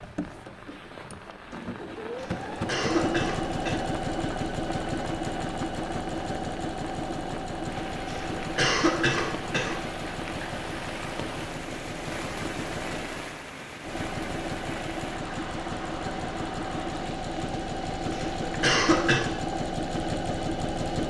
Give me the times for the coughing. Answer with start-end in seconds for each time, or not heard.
2.1-3.8, 8.1-9.8, 18.1-19.2.